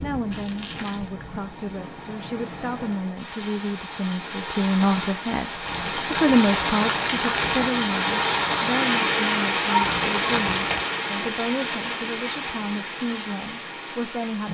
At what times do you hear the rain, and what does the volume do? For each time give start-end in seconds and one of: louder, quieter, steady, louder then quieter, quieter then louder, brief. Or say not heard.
0.0-14.4 louder then quieter.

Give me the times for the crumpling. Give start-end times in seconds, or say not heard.
0.3-1.1, 5.7-7.7, 9.8-10.9.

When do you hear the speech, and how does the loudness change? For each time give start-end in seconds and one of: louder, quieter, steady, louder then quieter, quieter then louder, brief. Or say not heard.
0.0-14.4 louder then quieter.